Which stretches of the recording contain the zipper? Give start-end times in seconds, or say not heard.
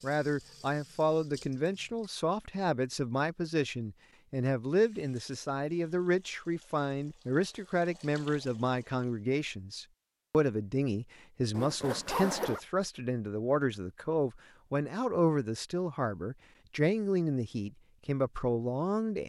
11.5-12.6.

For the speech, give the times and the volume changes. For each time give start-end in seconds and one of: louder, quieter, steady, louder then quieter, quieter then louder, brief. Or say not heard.
0.0-19.2 steady.